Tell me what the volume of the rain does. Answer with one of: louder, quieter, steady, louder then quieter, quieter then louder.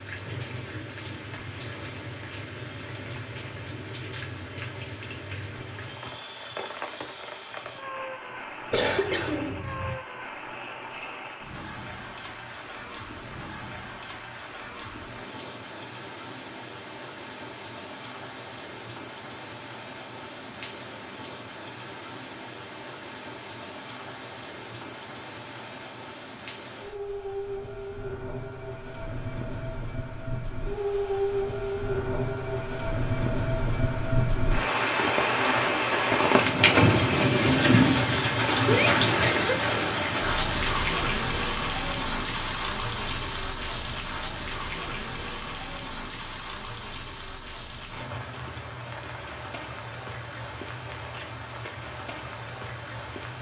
louder then quieter.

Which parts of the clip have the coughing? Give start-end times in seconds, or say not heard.
8.7-9.9, 38.6-39.6.